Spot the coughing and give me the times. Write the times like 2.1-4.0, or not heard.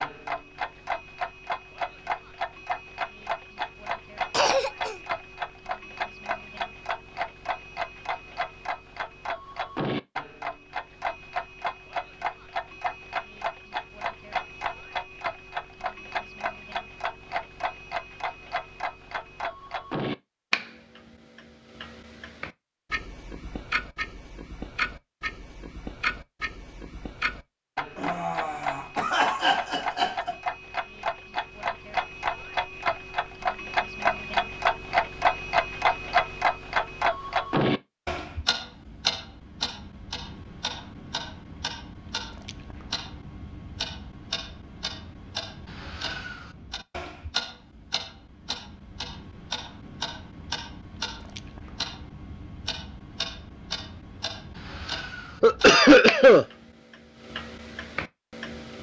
4.3-5.0, 27.9-30.4, 55.4-56.5.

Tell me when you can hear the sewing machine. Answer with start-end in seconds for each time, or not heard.
not heard.